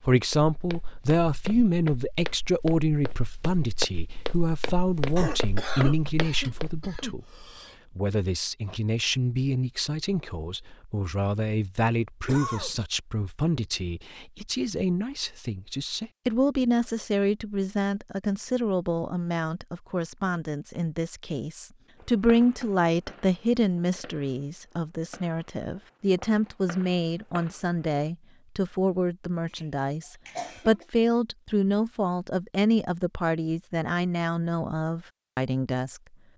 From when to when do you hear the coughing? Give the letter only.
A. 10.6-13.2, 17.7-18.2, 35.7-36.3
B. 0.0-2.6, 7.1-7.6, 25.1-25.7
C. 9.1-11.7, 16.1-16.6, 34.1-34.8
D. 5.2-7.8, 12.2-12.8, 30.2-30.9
D.